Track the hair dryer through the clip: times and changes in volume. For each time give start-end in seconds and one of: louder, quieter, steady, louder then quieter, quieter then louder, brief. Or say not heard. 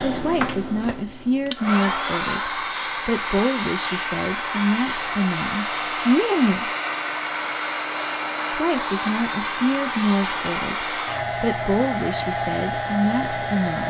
0.0-13.8 steady.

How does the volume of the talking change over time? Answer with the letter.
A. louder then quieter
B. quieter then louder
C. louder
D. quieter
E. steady
E.